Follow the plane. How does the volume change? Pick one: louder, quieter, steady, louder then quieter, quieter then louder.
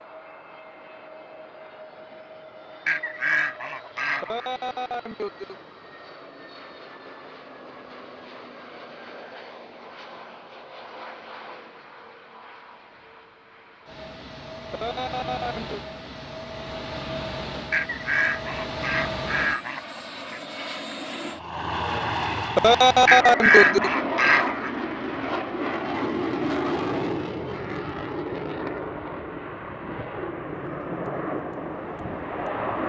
louder.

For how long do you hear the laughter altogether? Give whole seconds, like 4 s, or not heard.
4 s.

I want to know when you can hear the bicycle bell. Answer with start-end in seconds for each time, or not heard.
not heard.